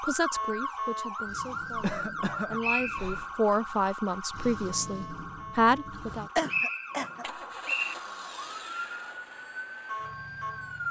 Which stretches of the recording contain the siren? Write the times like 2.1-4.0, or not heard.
0.0-10.8.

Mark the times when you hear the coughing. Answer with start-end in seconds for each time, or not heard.
1.7-3.2, 6.3-7.7.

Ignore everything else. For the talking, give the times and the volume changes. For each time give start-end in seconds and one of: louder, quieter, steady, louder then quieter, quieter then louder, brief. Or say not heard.
0.0-6.2 louder.